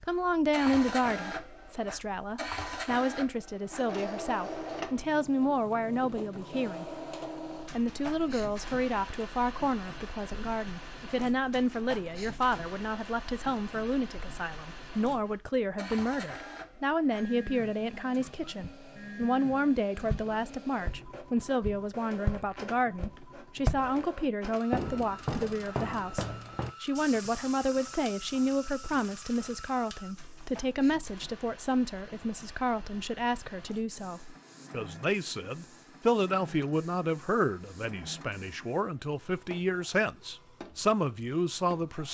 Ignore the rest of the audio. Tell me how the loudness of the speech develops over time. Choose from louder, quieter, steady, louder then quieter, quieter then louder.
steady.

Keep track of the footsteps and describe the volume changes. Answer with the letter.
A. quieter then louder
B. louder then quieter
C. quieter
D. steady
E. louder
C.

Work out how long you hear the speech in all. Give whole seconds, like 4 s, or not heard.
41 s.